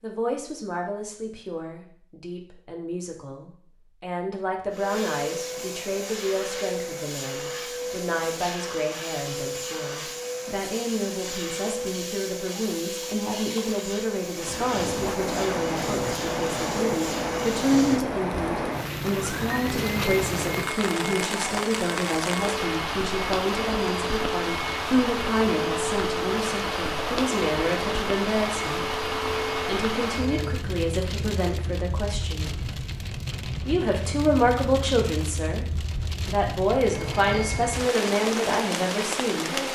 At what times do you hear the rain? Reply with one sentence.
You can hear the rain from 14.3 to 39.7 s.